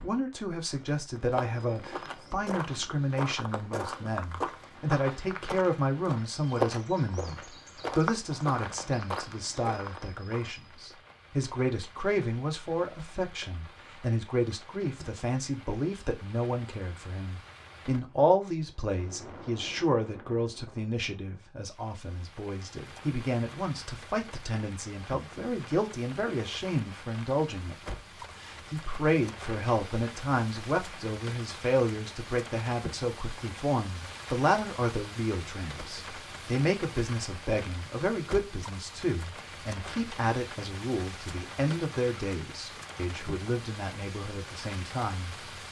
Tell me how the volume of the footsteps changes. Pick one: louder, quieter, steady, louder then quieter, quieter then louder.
louder then quieter.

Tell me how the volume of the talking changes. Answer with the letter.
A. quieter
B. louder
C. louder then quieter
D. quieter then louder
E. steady
E.